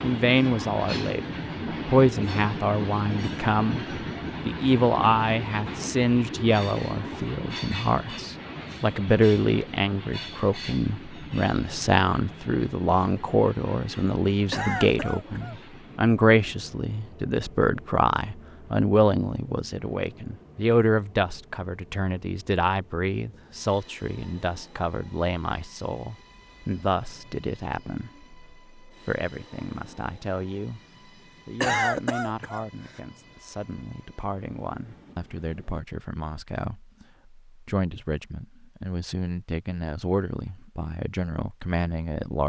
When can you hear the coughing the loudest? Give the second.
32 s.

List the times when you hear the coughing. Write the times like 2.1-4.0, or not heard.
14.5-15.6, 31.6-33.0.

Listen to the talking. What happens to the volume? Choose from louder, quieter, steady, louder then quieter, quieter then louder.
quieter.